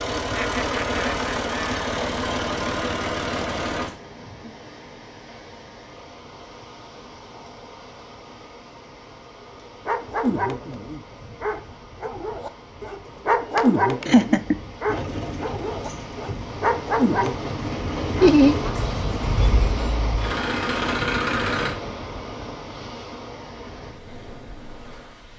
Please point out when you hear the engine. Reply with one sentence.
You can hear the engine from 0.0 to 3.9 s and from 14.8 to 21.8 s.